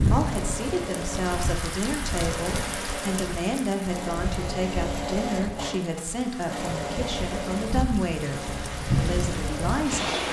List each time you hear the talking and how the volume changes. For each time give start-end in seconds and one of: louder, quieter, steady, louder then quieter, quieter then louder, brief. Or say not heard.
0.1-10.2 steady.